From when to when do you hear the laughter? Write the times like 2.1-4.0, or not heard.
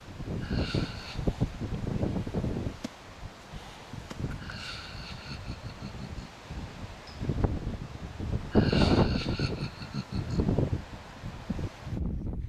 0.4-1.2, 4.3-6.3, 8.5-10.4.